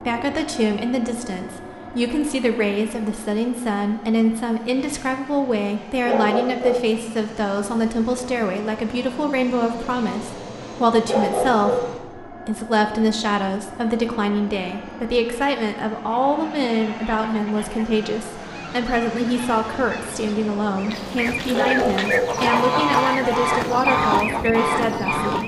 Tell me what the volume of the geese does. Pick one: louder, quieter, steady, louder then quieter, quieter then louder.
louder.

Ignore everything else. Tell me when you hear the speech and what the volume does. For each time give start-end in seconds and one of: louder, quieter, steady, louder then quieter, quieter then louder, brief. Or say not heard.
0.1-25.4 steady.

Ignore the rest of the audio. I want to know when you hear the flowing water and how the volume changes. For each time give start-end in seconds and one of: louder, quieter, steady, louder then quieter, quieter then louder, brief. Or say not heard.
not heard.